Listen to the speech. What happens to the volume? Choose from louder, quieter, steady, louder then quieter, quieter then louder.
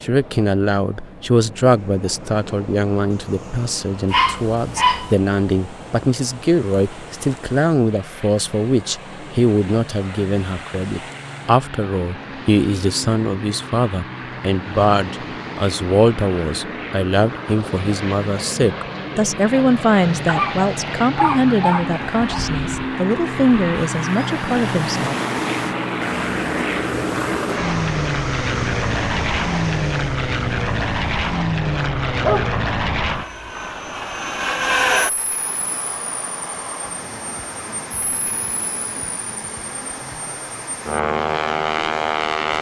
steady.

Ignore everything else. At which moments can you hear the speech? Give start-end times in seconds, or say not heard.
0.0-25.1.